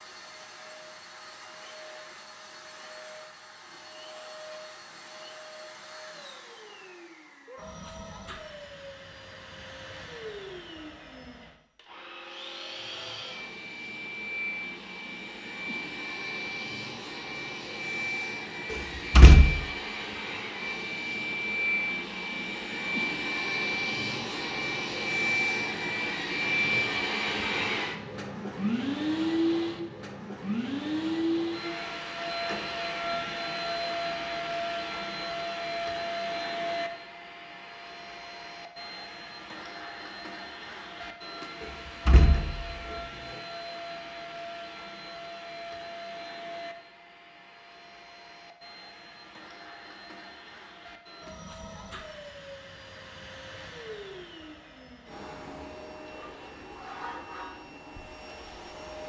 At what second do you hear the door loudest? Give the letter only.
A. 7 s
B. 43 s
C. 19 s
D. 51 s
C.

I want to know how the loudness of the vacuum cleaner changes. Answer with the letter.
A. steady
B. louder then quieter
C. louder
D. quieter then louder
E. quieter
B.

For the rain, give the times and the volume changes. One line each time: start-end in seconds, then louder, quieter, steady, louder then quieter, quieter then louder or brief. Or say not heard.
not heard.